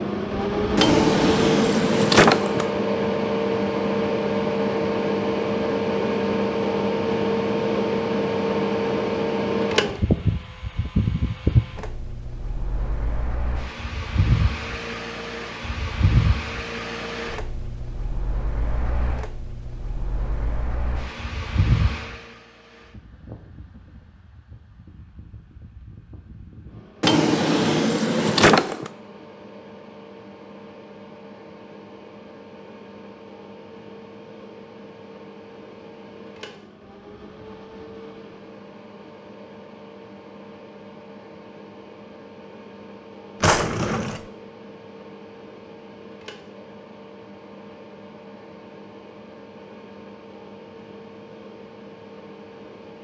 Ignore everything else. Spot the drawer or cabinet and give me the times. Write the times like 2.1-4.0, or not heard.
0.8-2.6, 27.0-28.9, 43.4-44.2.